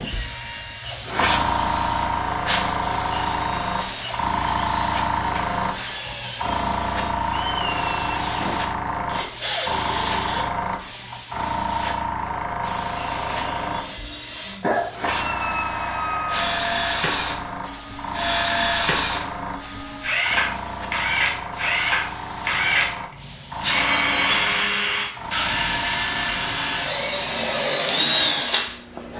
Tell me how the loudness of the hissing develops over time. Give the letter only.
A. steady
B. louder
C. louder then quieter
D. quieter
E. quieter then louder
D.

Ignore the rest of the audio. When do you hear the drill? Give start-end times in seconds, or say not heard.
0.0-10.4, 12.9-29.1.